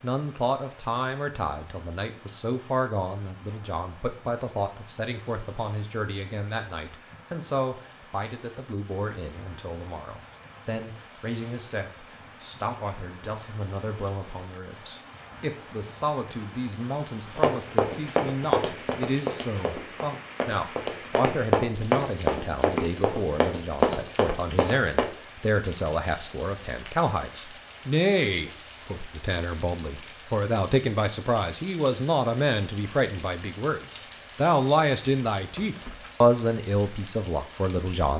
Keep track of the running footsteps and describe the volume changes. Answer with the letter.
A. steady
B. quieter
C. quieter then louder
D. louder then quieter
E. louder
C.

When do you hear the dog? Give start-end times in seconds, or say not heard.
not heard.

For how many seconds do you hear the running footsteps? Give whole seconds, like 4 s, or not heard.
8 s.